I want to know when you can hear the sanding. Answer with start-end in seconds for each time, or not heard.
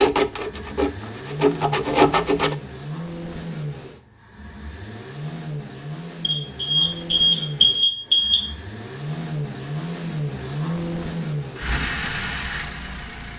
0.0-2.5.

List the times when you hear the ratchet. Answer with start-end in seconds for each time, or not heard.
not heard.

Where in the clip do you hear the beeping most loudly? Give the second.
8 s.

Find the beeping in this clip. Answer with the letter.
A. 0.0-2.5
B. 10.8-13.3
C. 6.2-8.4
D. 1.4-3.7
C.